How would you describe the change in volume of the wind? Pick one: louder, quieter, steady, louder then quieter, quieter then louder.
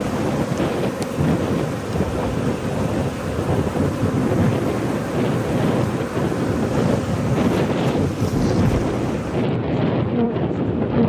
steady.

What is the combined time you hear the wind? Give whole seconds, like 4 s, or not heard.
11 s.